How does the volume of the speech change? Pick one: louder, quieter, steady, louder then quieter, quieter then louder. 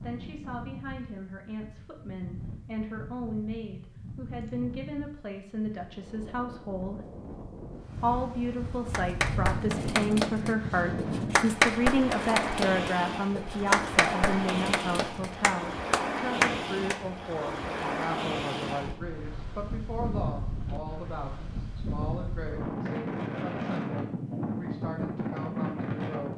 louder then quieter.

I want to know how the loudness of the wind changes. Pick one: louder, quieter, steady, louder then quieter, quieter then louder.
louder.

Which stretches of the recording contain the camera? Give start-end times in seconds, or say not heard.
not heard.